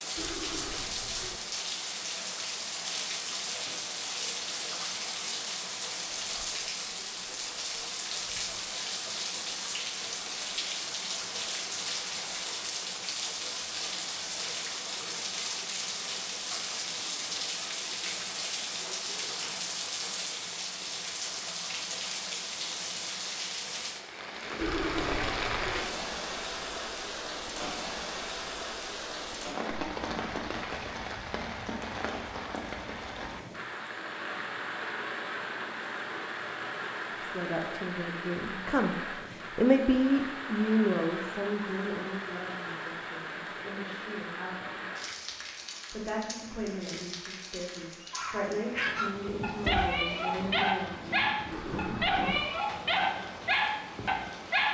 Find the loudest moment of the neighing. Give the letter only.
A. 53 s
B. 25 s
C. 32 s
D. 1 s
B.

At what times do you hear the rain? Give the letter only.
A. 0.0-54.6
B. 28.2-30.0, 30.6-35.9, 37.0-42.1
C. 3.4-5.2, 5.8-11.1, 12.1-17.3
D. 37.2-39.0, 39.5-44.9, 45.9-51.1
A.